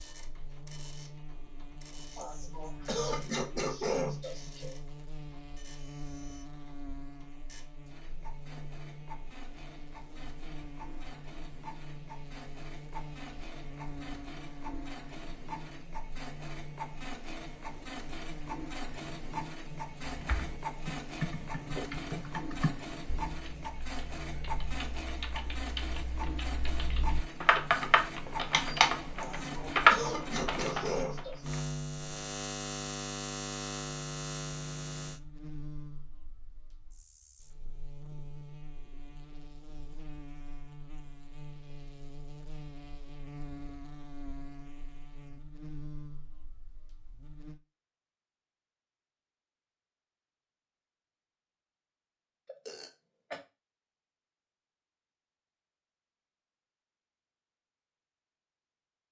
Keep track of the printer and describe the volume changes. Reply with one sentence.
The loudness of the printer goes up.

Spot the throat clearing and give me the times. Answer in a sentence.
The throat clearing can be heard from 2.1 to 4.8 s, from 29.1 to 31.4 s and from 52.5 to 53.4 s.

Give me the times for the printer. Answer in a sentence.
The printer can be heard from 0.0 to 30.8 s.